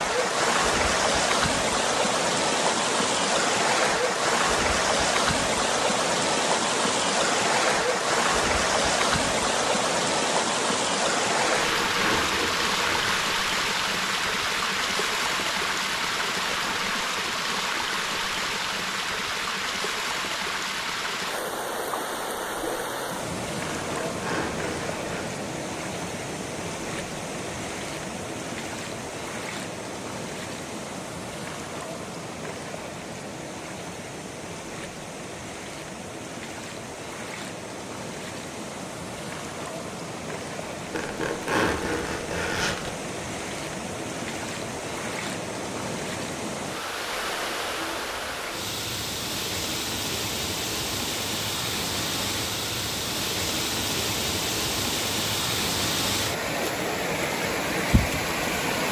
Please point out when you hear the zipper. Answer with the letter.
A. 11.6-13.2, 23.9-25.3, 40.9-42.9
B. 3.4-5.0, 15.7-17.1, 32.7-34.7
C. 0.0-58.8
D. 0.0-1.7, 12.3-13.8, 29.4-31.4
A.